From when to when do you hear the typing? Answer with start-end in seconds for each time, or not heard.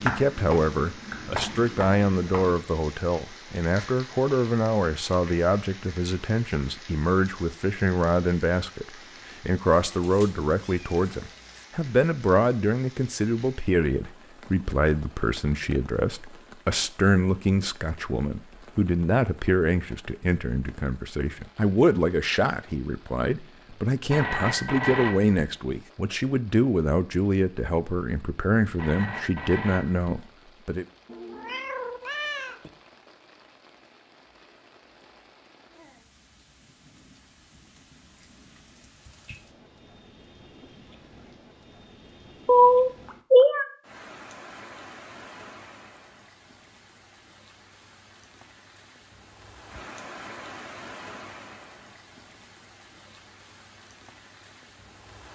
0.0-2.5.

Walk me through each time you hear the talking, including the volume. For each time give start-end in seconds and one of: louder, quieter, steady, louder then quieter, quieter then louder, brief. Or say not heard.
0.0-30.9 steady.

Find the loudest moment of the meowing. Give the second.
43 s.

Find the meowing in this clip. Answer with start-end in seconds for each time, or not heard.
9.7-11.7, 31.1-32.7, 42.5-43.6.